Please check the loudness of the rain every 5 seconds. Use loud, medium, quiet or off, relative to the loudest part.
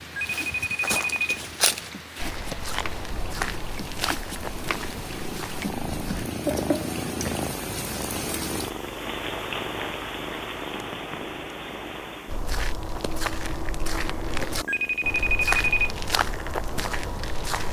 medium, loud, loud, off.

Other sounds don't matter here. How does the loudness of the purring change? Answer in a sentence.
The loudness of the purring goes up, then down.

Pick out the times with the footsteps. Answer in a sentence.
The footsteps can be heard from 0.2 to 6.3 s and from 12.2 to 17.6 s.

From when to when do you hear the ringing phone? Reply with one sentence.
The ringing phone can be heard from 0.1 to 1.4 s and from 14.7 to 15.9 s.